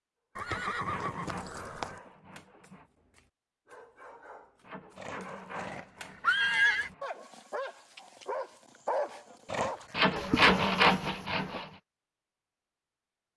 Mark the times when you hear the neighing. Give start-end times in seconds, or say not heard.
0.3-1.9, 5.0-6.9, 9.4-10.2.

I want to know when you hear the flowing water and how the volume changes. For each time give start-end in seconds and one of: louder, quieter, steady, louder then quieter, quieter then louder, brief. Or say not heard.
not heard.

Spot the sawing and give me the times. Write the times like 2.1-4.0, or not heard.
0.5-2.9, 4.6-7.0, 9.9-11.7.